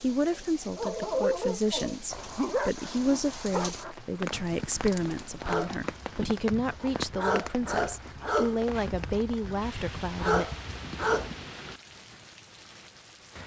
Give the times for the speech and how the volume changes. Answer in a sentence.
The speech can be heard from 0.0 to 10.5 s, at a steady volume.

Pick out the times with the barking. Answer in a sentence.
The barking can be heard from 0.8 to 11.3 s.